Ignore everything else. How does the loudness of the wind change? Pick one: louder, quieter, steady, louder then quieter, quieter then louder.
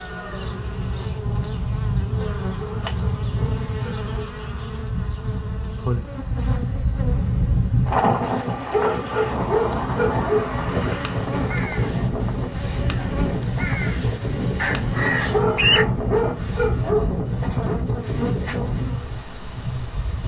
steady.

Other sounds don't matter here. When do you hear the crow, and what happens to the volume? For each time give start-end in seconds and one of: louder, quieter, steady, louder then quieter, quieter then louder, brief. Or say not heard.
10.1-15.8 louder.